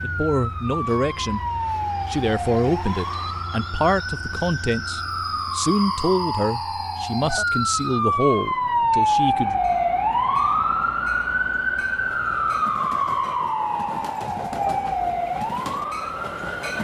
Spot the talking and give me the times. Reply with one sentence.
The talking can be heard from 0.0 to 1.4 s and from 2.0 to 9.6 s.